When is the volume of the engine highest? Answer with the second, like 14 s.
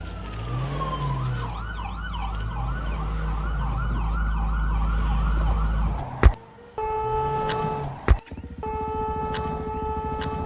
1 s.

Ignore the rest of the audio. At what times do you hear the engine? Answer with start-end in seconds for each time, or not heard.
0.0-10.4.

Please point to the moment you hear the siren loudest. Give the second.
7 s.